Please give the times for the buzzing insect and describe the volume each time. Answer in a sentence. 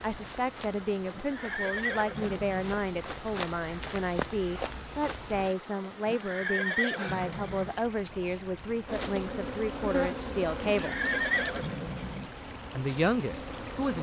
The buzzing insect can be heard from 8.8 to 13.9 s, getting quieter.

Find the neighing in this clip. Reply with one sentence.
The neighing can be heard from 1.1 to 2.8 s, from 6.0 to 7.8 s and from 10.7 to 12.3 s.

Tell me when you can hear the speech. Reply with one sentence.
You can hear the speech from 0.0 to 10.9 s and from 12.8 to 13.9 s.